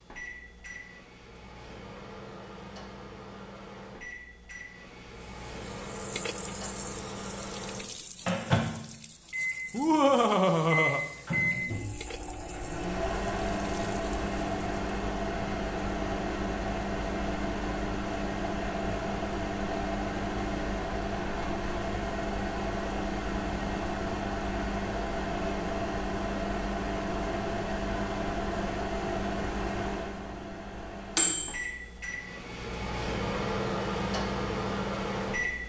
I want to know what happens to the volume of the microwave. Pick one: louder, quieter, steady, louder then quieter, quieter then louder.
louder.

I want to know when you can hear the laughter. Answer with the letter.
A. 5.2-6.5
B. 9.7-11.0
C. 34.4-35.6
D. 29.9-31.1
B.